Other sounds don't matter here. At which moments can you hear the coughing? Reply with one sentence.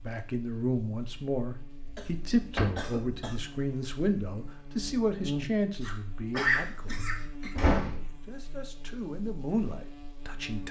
You can hear the coughing from 1.9 to 3.5 s and from 5.8 to 7.5 s.